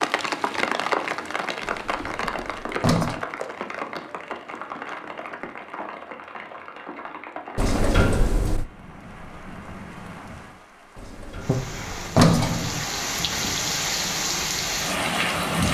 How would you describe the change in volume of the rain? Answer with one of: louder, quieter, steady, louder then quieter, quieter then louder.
quieter then louder.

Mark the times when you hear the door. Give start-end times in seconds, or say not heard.
1.6-3.2, 7.5-8.7, 10.9-12.8.